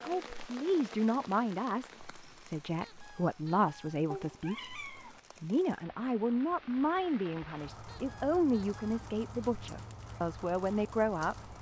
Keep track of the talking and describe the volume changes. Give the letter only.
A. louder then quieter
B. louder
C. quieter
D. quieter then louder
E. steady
E.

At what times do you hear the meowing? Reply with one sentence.
You can hear the meowing from 4.1 to 5.2 s.